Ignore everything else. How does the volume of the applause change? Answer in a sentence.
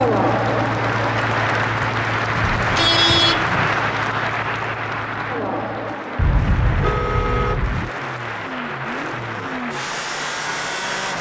The volume of the applause goes down.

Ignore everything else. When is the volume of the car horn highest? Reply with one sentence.
The loudest moment of the car horn is at 3 seconds.